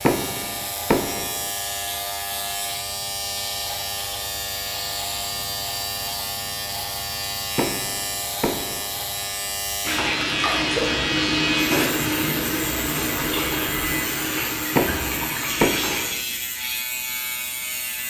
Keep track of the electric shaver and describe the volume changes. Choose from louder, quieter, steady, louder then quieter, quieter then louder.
steady.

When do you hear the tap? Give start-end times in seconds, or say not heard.
9.8-16.1.